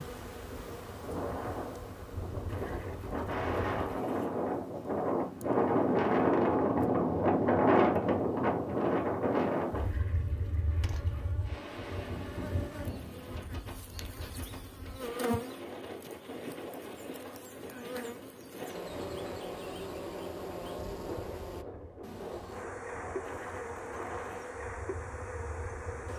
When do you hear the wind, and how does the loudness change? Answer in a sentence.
The wind can be heard from 0.1 to 26.1 s, getting louder then quieter.